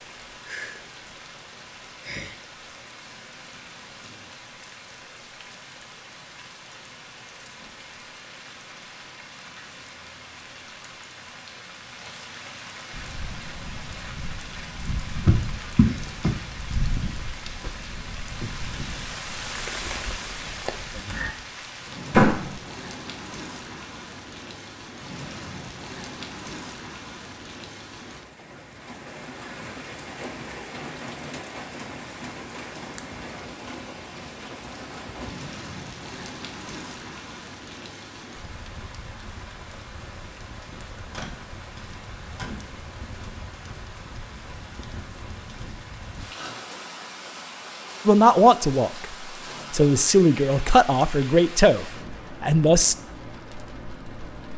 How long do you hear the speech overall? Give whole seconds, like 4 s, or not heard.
4 s.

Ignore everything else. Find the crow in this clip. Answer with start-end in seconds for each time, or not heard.
12.9-21.4.